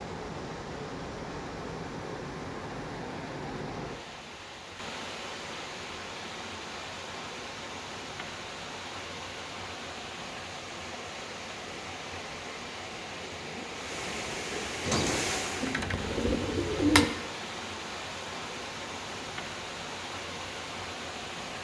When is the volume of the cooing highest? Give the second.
17 s.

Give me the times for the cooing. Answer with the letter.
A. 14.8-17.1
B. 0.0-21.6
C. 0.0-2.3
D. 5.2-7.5
A.